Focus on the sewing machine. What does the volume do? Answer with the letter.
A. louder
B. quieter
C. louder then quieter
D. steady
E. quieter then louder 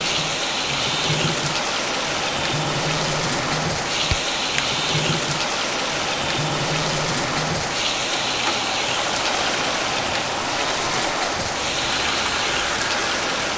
D.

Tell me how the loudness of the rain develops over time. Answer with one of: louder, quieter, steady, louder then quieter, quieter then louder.
steady.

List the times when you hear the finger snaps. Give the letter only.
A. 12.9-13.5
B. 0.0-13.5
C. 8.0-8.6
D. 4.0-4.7
D.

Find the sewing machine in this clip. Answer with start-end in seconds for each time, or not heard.
0.0-13.5.